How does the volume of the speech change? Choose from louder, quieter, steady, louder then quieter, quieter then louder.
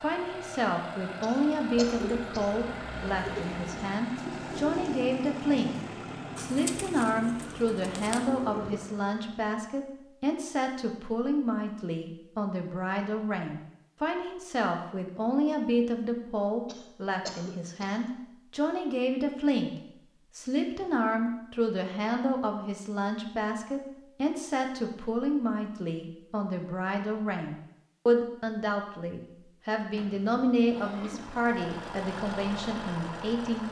steady.